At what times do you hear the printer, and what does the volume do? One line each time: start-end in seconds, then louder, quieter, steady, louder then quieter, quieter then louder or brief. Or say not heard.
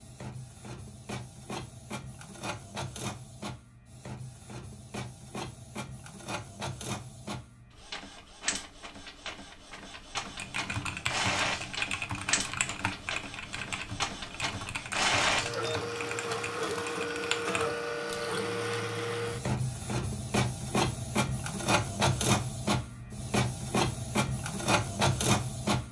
0.0-25.8 louder.